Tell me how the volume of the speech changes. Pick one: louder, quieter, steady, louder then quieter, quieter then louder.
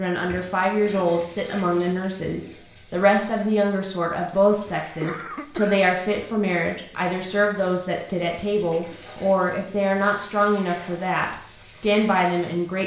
steady.